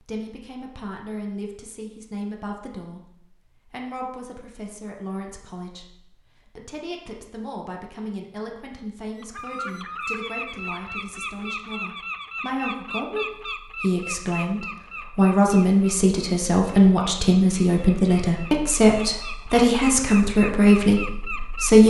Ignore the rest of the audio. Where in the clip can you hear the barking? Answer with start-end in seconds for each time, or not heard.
not heard.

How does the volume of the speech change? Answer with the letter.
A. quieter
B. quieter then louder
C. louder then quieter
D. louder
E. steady
D.